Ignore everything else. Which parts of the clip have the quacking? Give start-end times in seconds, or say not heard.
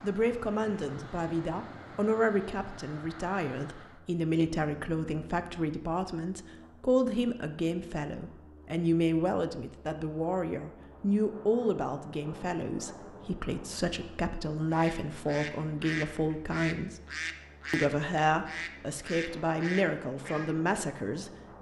14.7-20.6.